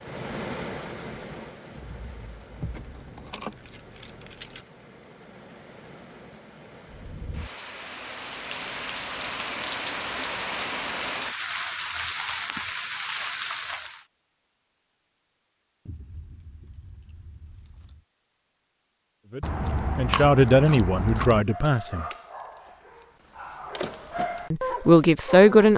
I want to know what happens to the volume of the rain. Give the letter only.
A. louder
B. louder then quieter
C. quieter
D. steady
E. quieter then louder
E.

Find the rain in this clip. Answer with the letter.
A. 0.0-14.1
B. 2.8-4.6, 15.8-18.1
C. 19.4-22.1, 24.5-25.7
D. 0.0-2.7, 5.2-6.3
A.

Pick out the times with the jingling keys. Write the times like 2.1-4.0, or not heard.
2.8-4.6, 15.8-18.1.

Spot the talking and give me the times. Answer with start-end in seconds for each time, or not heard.
19.4-22.1, 24.5-25.7.